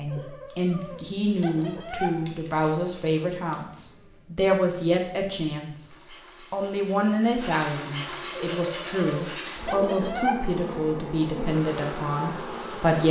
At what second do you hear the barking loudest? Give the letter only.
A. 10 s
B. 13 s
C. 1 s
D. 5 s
A.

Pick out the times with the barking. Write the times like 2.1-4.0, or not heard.
0.1-2.1, 8.3-10.3.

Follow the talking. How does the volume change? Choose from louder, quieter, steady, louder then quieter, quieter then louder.
steady.